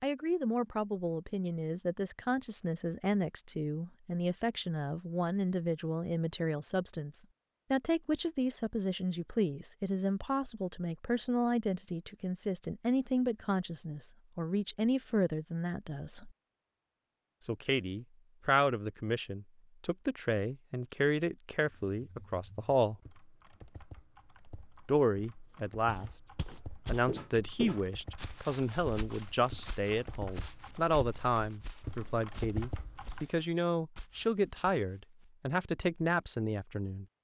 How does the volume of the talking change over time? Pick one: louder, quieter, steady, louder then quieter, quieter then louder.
steady.